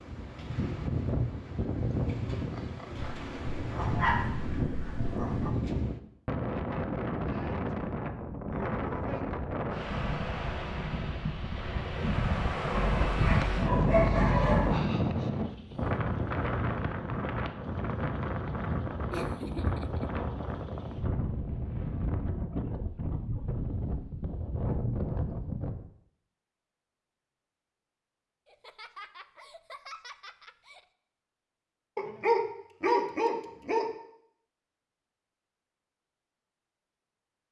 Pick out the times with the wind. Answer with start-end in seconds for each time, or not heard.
0.0-25.9.